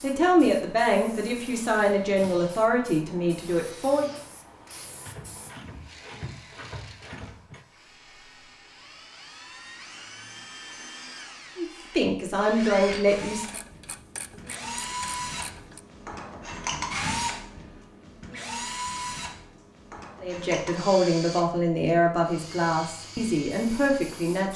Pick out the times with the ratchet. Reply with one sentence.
The ratchet can be heard from 5.0 to 7.7 s and from 13.4 to 15.8 s.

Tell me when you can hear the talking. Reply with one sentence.
You can hear the talking from 0.0 to 4.1 s, from 11.6 to 13.6 s and from 20.2 to 24.5 s.